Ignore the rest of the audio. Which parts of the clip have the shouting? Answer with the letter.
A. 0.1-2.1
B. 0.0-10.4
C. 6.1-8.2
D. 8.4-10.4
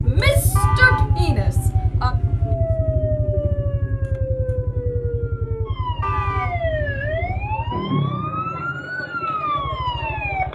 A.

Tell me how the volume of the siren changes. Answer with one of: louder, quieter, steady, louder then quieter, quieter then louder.
louder.